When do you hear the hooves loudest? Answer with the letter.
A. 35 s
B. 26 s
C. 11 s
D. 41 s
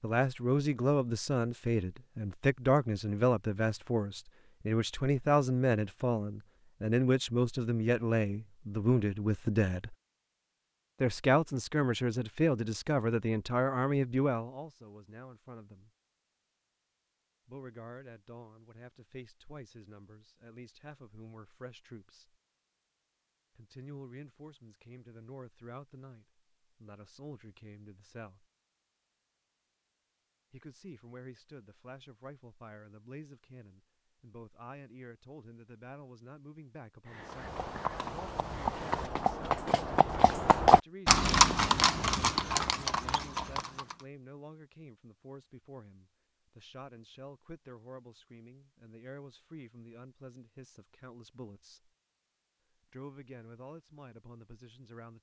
D.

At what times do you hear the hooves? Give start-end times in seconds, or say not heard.
37.0-44.0.